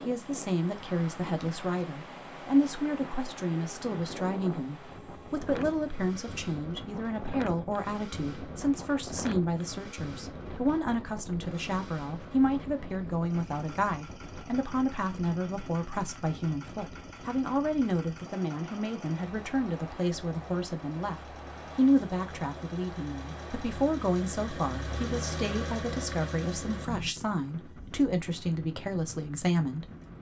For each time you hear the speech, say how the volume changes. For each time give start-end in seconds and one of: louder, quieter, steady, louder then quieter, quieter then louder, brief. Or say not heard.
0.0-29.9 steady.